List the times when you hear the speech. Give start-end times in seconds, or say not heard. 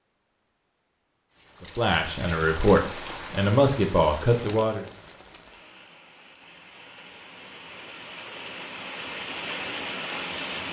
1.6-4.8.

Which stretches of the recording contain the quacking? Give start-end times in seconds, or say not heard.
not heard.